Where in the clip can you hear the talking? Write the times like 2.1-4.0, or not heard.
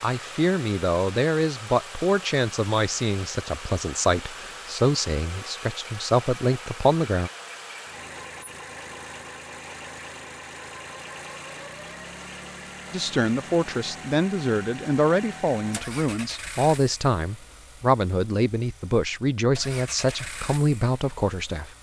0.0-7.3, 12.9-21.7.